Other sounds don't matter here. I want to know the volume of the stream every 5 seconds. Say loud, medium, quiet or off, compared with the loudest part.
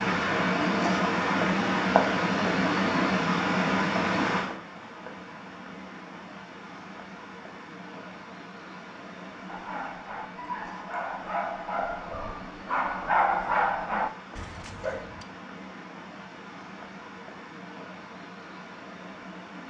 loud, quiet, quiet, quiet.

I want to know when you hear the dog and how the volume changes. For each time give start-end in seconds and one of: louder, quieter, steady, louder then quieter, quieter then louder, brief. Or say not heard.
9.4-15.2 louder then quieter.